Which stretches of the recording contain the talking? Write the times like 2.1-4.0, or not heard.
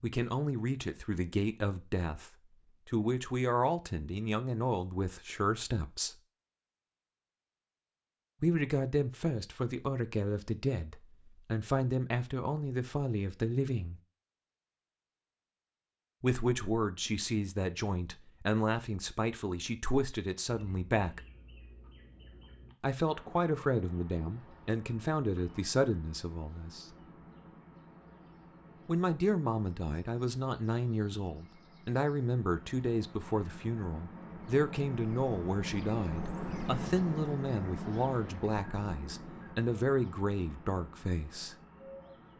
0.0-6.2, 8.4-14.0, 16.2-21.2, 22.8-26.9, 28.9-41.5.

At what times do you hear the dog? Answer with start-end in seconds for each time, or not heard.
not heard.